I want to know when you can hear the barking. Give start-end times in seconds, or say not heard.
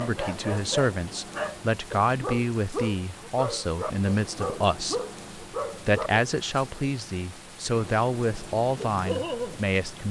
0.0-6.2, 8.8-10.0.